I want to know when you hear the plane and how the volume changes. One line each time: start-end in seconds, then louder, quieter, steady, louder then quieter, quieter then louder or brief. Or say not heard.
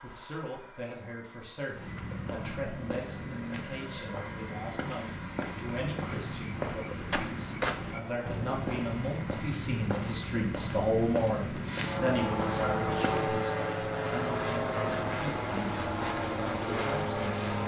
0.0-17.6 louder.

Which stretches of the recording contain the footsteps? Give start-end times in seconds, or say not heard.
1.7-13.3.